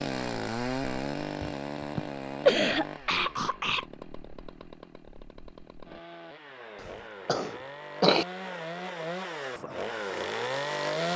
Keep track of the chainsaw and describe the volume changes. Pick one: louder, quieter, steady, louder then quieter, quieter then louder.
quieter then louder.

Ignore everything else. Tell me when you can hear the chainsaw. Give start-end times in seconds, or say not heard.
0.0-11.1.